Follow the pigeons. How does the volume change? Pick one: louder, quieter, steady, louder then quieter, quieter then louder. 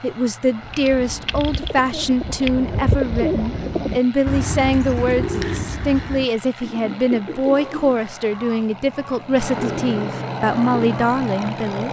louder then quieter.